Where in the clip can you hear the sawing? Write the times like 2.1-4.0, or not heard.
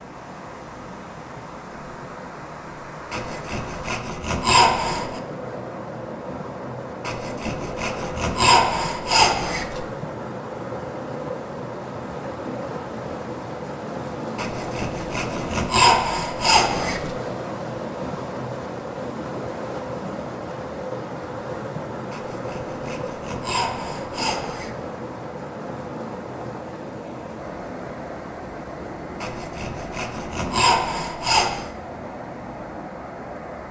3.1-5.2, 7.0-9.8, 14.3-17.1, 22.1-24.8, 29.2-31.7.